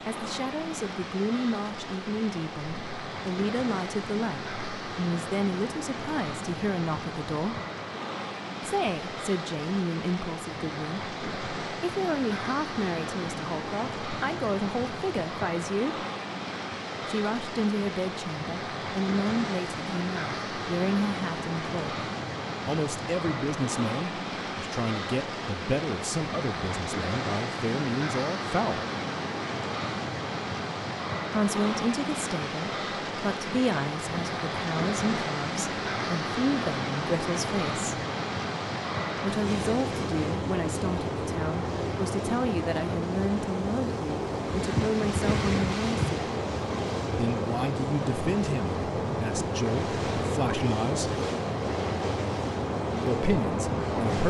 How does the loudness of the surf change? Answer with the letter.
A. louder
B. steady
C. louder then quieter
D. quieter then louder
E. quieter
A.